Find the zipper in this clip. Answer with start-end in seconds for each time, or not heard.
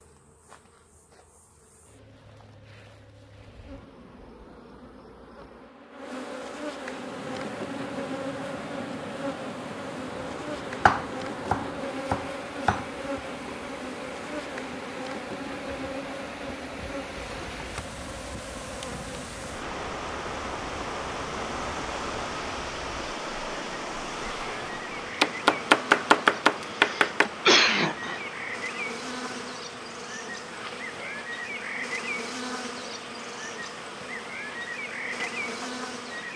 not heard.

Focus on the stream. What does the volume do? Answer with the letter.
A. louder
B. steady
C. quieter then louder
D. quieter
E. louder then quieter
E.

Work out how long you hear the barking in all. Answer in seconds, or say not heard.
not heard.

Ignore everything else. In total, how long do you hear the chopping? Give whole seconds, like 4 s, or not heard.
4 s.